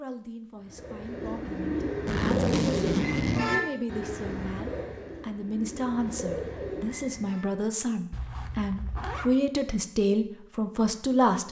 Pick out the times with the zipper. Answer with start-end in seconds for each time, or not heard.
2.0-3.6, 8.1-9.3.